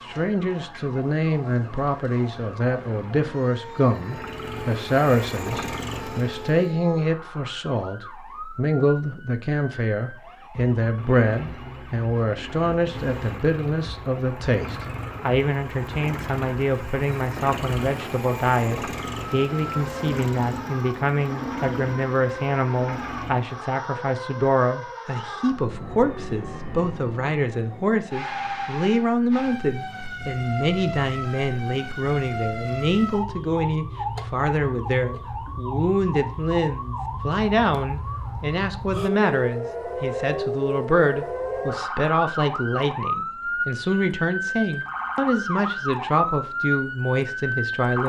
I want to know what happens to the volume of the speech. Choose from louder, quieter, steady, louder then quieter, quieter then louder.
steady.